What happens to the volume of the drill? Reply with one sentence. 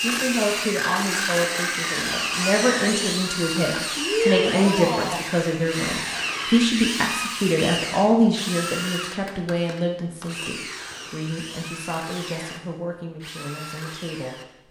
The loudness of the drill goes down.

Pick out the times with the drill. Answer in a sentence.
The drill can be heard from 0.0 to 14.6 s.